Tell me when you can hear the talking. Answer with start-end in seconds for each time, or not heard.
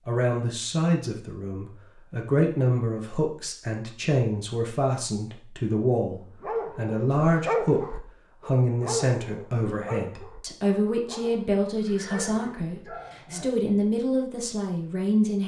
0.1-15.4.